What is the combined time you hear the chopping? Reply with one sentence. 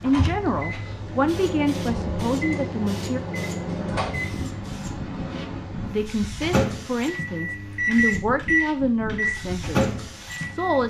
The chopping can't be heard in this clip.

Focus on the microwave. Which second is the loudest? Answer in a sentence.
The volume of the microwave peaks at 8 seconds.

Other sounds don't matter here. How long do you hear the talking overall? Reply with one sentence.
You can hear the talking for 8 seconds altogether.